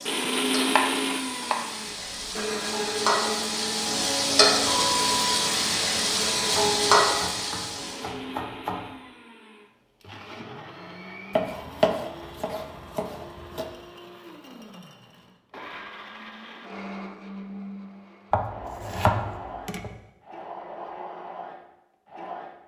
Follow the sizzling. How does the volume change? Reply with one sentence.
The loudness of the sizzling goes up.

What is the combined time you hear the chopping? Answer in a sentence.
You can hear the chopping for 8 seconds altogether.